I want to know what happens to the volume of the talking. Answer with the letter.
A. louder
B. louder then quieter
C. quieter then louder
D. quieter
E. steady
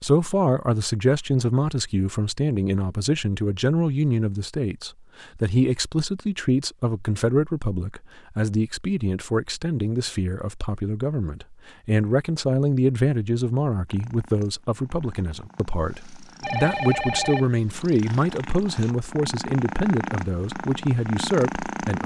E.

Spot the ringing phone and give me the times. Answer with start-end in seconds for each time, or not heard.
16.4-17.5.